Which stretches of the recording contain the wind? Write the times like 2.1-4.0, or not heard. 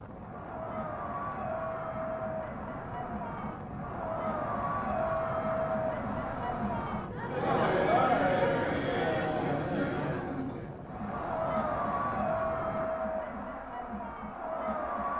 0.0-12.9.